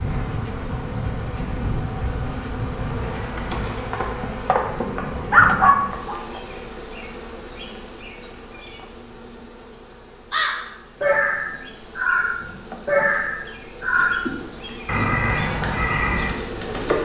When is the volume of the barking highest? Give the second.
6 s.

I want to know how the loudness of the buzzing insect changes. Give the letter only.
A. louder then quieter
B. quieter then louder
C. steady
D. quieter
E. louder
B.